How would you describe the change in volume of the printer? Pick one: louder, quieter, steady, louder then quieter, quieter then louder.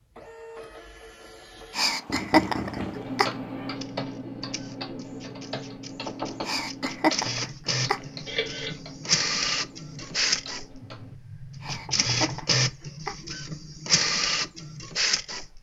louder.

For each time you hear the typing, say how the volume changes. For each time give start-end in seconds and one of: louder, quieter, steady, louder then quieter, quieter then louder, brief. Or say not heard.
3.0-11.2 quieter.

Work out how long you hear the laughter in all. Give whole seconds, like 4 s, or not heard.
5 s.